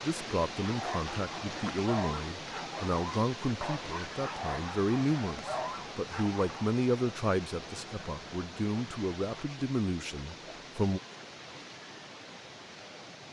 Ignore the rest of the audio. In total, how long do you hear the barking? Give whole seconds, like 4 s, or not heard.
6 s.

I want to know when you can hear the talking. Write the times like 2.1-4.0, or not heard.
0.0-11.0.